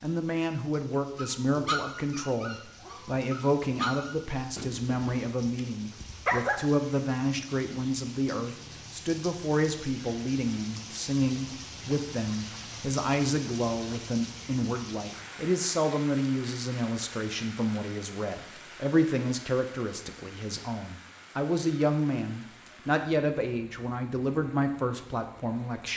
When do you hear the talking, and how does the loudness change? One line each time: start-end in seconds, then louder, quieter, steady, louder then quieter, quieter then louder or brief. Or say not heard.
0.0-25.9 steady.